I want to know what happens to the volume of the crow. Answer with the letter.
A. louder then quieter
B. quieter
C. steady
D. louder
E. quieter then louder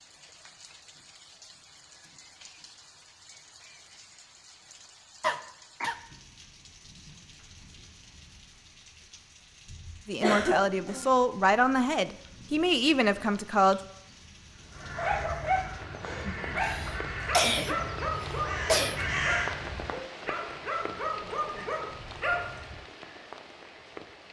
D.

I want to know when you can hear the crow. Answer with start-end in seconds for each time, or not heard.
14.5-20.0.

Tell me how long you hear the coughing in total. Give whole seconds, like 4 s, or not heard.
4 s.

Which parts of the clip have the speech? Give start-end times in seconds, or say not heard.
10.1-13.8.